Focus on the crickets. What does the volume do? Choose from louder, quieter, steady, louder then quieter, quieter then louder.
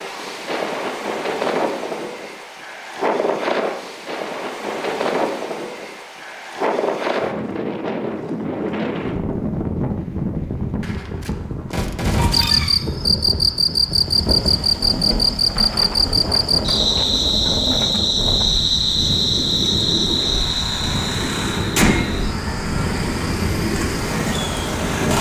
quieter.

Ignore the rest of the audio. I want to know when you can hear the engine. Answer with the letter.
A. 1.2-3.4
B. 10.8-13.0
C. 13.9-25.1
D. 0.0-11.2
C.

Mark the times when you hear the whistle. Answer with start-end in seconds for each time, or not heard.
not heard.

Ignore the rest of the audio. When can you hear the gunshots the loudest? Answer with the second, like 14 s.
12 s.